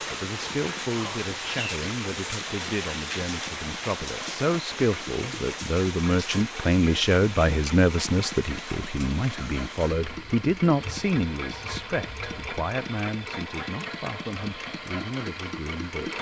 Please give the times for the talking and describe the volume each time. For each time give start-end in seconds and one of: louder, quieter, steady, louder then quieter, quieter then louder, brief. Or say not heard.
0.0-16.1 louder then quieter.